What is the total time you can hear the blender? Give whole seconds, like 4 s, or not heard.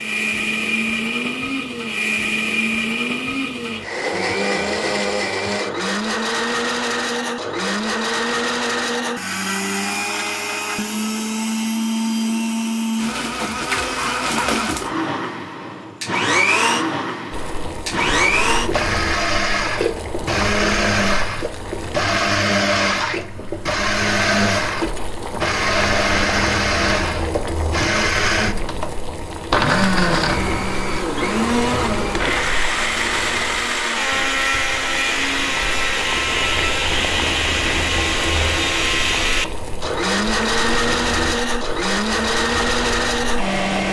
44 s.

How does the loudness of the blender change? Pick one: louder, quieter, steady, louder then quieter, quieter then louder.
steady.